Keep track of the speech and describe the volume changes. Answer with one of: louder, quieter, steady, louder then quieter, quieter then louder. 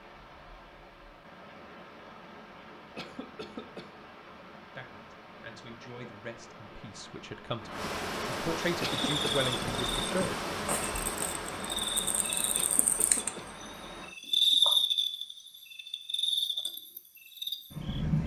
louder.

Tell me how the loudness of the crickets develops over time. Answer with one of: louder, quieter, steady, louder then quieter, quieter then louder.
louder then quieter.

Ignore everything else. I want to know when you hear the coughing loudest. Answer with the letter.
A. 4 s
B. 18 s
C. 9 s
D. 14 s
C.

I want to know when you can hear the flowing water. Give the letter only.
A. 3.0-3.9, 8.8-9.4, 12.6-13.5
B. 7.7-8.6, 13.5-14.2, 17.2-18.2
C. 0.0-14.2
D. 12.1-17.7
C.